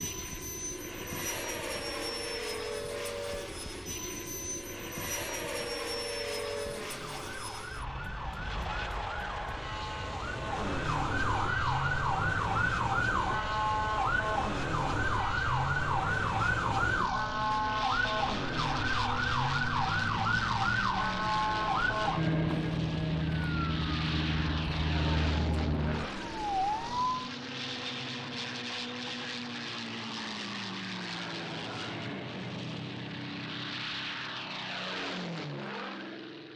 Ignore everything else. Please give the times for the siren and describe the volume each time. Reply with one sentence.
You can hear the siren from 0.0 to 27.3 s, getting louder.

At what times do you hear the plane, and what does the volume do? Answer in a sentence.
You can hear the plane from 0.0 to 36.5 s, at a steady volume.